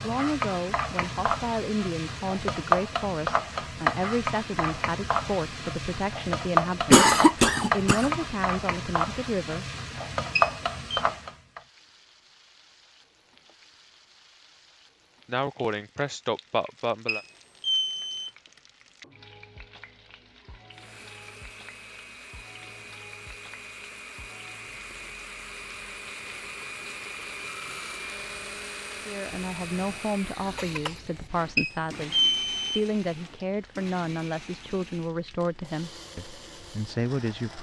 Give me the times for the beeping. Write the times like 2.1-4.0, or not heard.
10.3-11.0, 17.1-18.3, 31.6-32.8.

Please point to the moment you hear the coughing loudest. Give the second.
7 s.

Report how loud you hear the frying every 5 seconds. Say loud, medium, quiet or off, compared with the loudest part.
loud, loud, loud, quiet, quiet, quiet, quiet, quiet.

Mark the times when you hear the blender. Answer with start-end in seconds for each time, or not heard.
20.7-37.5.